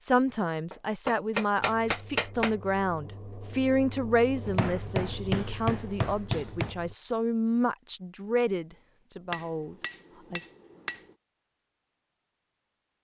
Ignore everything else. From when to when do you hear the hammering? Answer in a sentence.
You can hear the hammering from 0.7 to 2.5 s, from 4.5 to 6.8 s and from 9.3 to 11.0 s.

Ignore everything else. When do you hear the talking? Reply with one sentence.
The talking can be heard from 0.0 to 10.4 s.